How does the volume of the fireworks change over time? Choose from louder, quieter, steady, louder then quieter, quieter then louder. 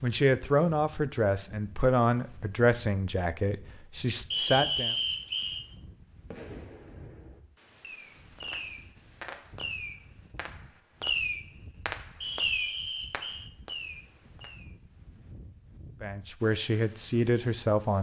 louder then quieter.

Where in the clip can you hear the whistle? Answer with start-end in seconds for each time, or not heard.
4.3-5.7, 12.2-13.5.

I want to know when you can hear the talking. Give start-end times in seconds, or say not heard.
0.0-5.0, 16.0-17.9.